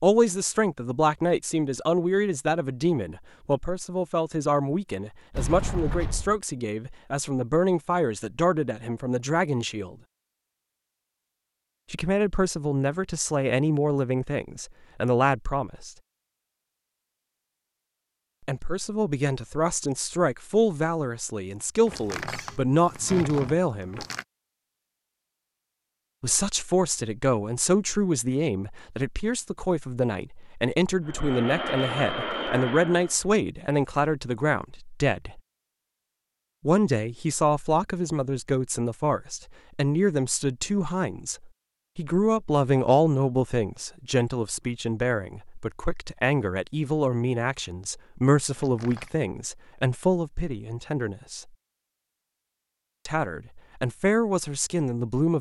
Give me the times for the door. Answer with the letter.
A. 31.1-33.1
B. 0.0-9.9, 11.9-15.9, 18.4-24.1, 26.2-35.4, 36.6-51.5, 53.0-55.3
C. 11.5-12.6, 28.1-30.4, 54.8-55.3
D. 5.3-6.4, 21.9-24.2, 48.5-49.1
D.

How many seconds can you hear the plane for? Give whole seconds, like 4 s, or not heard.
2 s.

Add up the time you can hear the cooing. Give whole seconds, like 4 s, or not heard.
not heard.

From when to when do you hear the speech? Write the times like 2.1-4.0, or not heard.
0.0-9.9, 11.9-15.9, 18.4-24.1, 26.2-35.4, 36.6-51.5, 53.0-55.3.